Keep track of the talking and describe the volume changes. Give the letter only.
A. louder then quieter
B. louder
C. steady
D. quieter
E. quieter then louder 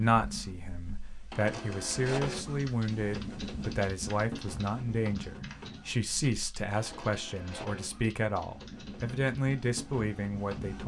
C.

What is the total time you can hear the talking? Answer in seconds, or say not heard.
11 s.